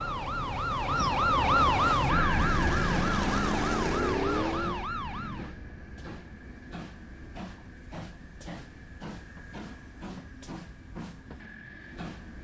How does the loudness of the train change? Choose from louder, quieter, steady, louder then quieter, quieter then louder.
quieter.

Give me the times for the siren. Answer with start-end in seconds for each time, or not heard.
0.0-5.5.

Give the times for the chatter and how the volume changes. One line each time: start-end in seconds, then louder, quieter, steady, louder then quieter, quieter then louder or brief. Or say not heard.
not heard.